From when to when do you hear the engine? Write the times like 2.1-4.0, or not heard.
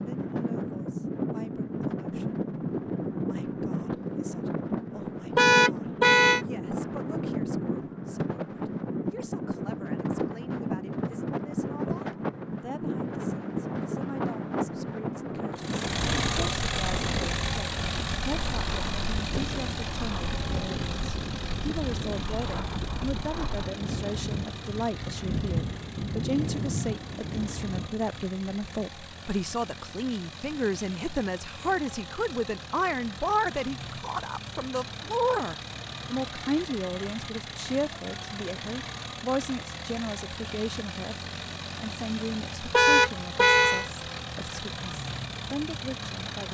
15.6-46.4.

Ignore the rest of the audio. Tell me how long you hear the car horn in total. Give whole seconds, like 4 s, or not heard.
2 s.